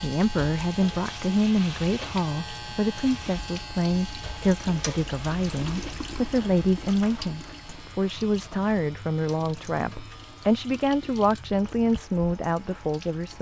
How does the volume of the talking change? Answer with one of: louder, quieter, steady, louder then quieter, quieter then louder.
steady.